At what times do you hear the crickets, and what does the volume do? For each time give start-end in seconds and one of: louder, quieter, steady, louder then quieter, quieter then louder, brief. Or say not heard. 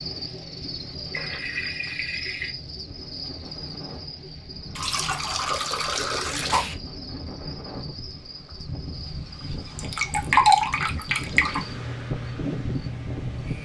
0.0-13.6 quieter then louder.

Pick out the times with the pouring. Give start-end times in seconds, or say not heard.
1.1-2.5, 4.8-6.8, 9.8-11.6.